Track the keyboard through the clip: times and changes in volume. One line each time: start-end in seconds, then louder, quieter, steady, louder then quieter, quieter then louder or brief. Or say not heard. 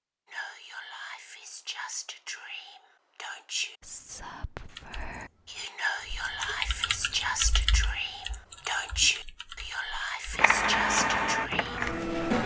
4.7-10.4 louder then quieter.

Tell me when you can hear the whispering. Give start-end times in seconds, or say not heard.
0.3-11.9.